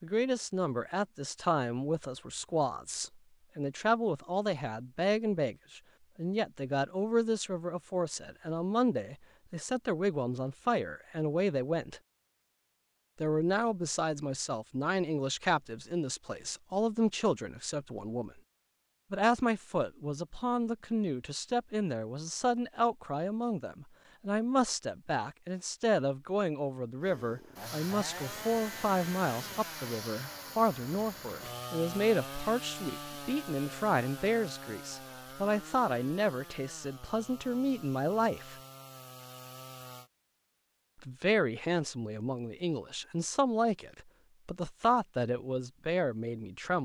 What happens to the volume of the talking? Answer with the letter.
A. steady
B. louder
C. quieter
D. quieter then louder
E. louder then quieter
A.